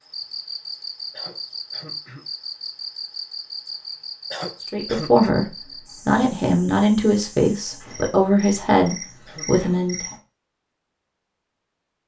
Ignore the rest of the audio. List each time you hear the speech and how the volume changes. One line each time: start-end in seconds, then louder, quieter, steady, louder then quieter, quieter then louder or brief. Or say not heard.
4.7-10.1 steady.